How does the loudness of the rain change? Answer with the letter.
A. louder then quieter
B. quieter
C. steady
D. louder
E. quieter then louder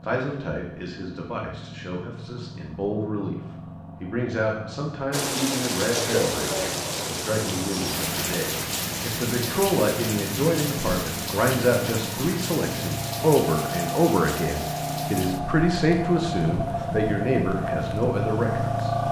B.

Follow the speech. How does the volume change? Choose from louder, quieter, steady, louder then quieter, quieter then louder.
louder.